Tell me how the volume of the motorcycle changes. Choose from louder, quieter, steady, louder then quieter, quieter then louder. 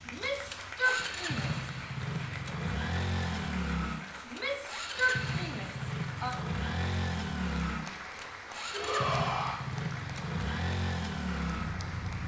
steady.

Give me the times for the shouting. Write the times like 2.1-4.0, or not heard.
0.1-1.7, 4.2-6.3, 8.7-9.6.